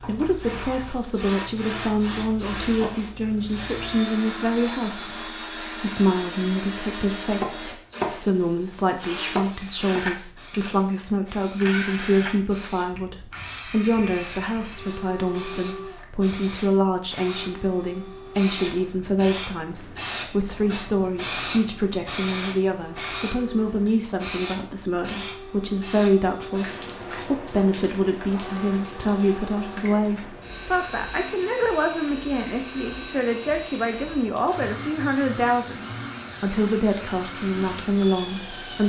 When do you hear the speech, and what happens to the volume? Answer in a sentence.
You can hear the speech from 0.0 to 38.8 s, at a steady volume.